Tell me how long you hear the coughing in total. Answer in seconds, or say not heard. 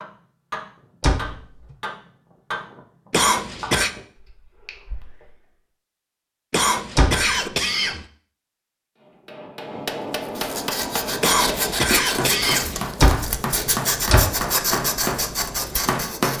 4 s.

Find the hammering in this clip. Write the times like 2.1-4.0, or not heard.
0.0-5.3, 9.0-16.3.